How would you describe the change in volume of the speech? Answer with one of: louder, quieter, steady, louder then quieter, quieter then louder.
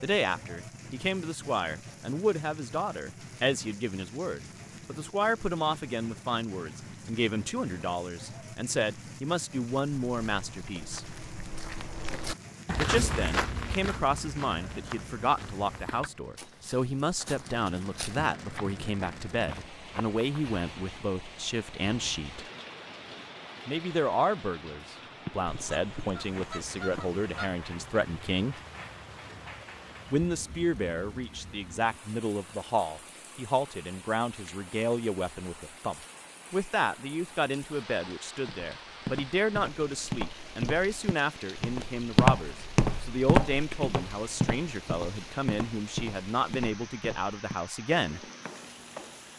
steady.